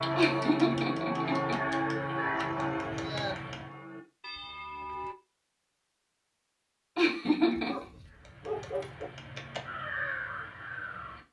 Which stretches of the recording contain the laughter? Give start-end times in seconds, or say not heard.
0.1-1.6, 7.0-7.8.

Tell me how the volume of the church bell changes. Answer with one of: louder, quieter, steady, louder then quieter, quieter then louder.
quieter.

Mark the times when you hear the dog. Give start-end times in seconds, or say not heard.
2.4-3.4, 7.5-9.1.